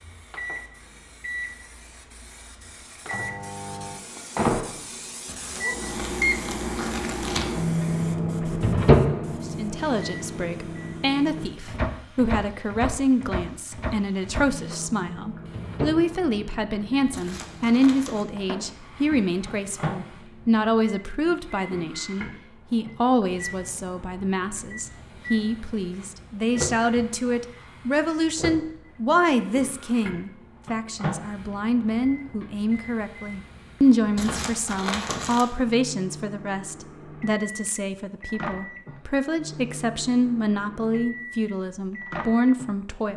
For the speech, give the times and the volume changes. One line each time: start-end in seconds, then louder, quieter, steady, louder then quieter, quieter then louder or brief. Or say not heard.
9.4-43.1 steady.